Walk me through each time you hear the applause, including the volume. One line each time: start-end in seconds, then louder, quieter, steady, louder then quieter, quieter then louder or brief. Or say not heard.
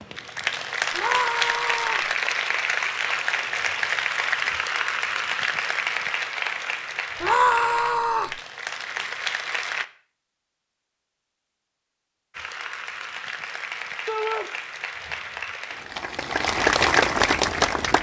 0.0-9.8 quieter
12.3-17.9 louder.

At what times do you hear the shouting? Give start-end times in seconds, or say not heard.
0.9-2.1, 7.2-8.3, 14.1-14.5.